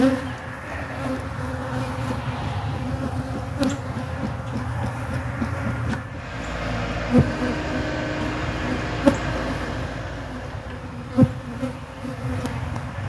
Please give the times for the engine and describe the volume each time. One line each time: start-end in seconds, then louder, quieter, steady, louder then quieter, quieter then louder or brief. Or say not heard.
6.0-13.0 quieter.